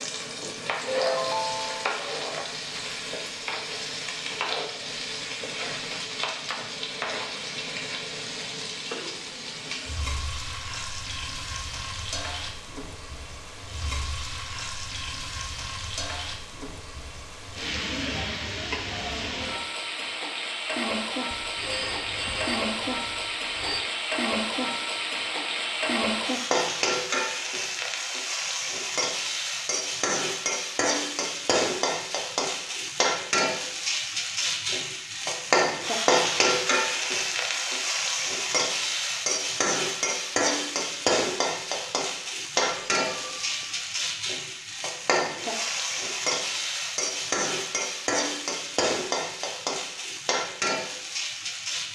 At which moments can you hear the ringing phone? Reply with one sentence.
The ringing phone can be heard from 0.8 to 2.0 s, from 21.3 to 23.9 s and from 42.6 to 43.9 s.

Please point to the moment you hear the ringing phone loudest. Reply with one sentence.
The loudest moment of the ringing phone is at 1 second.